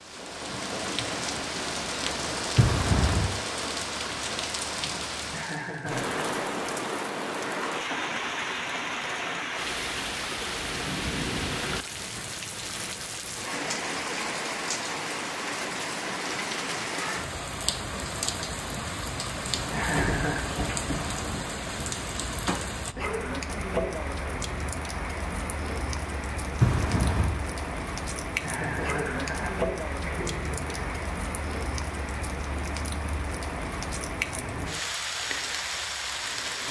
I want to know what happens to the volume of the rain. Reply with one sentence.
The loudness of the rain stays about the same.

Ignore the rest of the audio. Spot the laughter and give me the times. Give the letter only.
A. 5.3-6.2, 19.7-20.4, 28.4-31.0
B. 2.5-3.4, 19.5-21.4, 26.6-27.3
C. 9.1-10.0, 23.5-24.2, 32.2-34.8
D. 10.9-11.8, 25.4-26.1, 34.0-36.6
A.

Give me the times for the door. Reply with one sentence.
The door can be heard from 2.5 to 3.4 s, from 19.5 to 21.4 s and from 26.6 to 27.3 s.